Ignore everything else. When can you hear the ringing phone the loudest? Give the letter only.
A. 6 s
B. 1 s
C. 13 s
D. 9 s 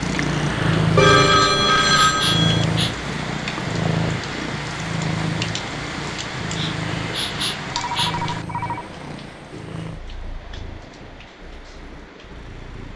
B.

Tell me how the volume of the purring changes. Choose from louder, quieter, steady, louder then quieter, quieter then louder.
quieter.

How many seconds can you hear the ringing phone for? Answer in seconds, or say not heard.
3 s.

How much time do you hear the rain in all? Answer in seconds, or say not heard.
13 s.